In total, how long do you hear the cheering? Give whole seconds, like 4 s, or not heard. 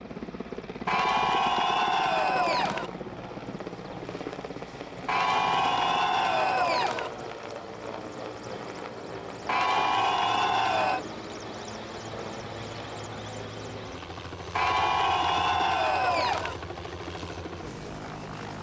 8 s.